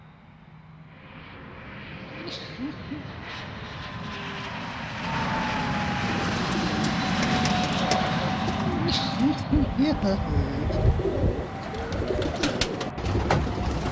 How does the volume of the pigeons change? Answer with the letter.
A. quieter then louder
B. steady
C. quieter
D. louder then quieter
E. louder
E.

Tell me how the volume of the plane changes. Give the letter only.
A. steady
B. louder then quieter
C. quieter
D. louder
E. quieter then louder
B.